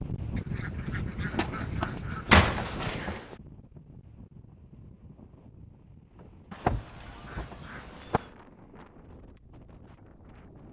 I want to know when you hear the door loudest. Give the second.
2 s.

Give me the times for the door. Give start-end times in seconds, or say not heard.
1.4-3.4, 6.6-8.2.